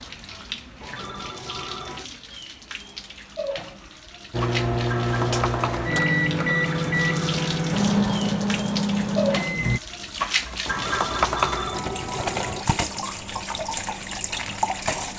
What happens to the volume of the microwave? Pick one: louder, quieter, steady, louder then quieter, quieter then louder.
steady.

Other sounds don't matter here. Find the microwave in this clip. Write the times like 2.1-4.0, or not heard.
4.3-9.8.